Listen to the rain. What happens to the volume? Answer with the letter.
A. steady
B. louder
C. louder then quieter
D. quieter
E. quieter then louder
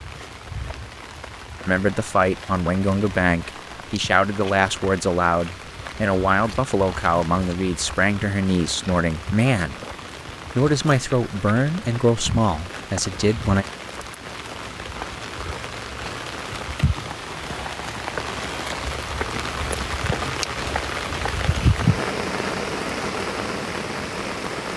B.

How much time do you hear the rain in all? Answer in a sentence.
You can hear the rain for 25 seconds altogether.